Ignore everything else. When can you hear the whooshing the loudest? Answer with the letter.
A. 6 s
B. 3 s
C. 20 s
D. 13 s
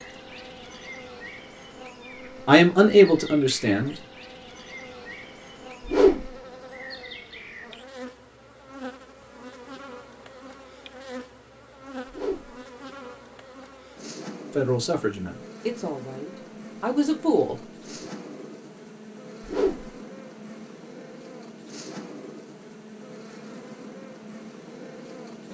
A.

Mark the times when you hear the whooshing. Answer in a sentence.
The whooshing can be heard from 5.8 to 6.4 s, from 12.1 to 12.6 s and from 19.4 to 19.9 s.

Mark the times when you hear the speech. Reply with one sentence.
You can hear the speech from 2.5 to 4.0 s and from 14.6 to 17.6 s.